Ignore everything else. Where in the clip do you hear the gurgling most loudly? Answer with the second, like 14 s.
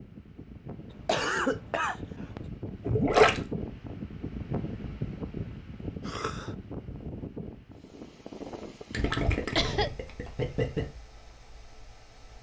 3 s.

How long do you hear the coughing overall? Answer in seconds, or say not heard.
3 s.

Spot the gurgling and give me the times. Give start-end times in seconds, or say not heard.
2.9-3.4, 8.9-10.8.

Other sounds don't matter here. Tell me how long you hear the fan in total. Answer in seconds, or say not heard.
12 s.